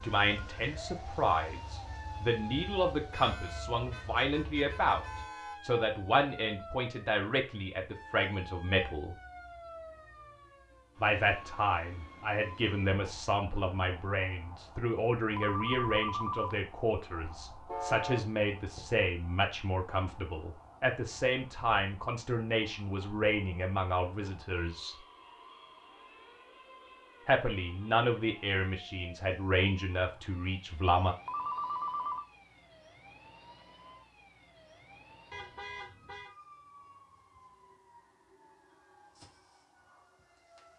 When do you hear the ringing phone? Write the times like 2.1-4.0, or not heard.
15.3-16.6, 31.2-32.2.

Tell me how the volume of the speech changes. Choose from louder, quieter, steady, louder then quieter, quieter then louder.
steady.